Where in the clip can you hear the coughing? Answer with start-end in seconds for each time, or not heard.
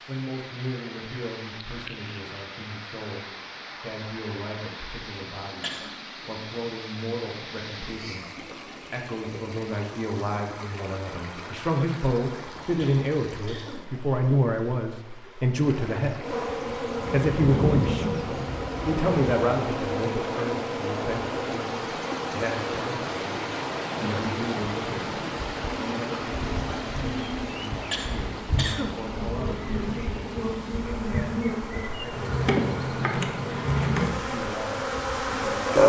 5.5-5.9, 12.8-13.8, 27.9-28.9.